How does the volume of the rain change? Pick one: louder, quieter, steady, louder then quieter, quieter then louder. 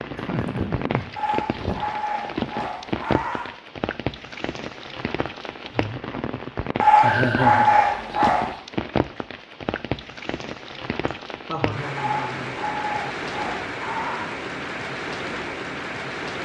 steady.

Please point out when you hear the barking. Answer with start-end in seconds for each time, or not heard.
1.1-3.5, 6.8-8.6, 11.9-14.3.